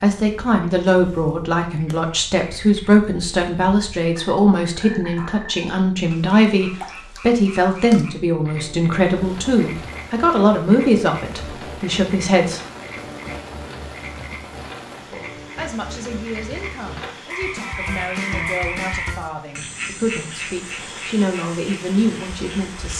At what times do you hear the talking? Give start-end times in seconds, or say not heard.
0.0-12.6, 15.0-22.9.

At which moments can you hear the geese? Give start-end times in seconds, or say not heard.
not heard.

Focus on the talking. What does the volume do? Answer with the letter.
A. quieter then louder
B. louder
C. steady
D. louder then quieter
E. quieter
E.